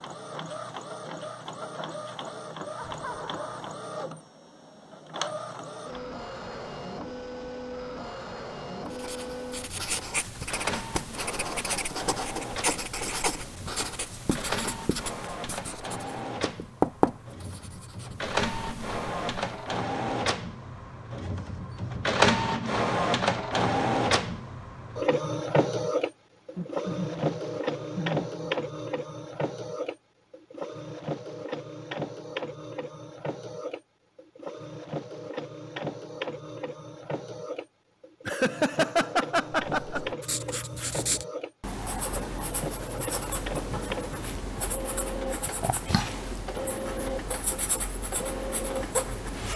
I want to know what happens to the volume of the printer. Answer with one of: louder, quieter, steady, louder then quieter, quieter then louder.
louder then quieter.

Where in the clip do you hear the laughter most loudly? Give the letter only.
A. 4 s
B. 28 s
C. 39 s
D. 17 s
C.